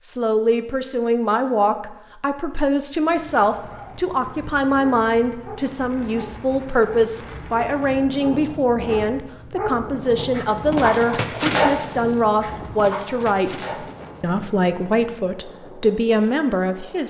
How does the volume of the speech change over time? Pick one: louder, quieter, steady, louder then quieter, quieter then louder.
steady.